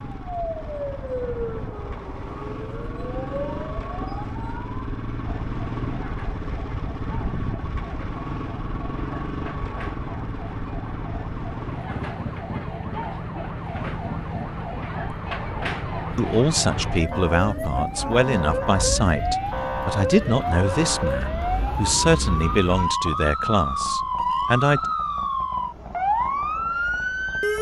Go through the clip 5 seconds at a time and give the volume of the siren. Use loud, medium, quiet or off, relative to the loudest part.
medium, quiet, medium, loud, loud, loud.